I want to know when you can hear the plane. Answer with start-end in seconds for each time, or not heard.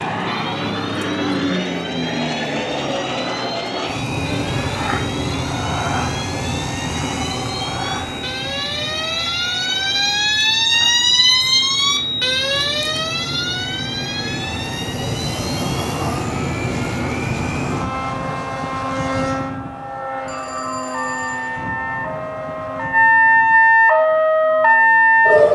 0.0-25.4.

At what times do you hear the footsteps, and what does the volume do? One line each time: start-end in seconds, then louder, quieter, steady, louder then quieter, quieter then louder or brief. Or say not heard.
not heard.